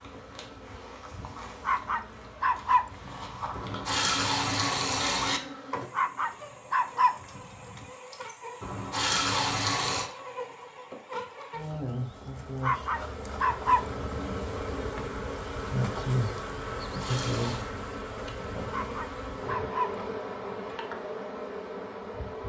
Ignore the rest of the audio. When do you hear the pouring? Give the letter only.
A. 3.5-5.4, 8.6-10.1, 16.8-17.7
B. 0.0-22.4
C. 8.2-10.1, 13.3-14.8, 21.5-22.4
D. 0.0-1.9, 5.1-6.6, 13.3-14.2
A.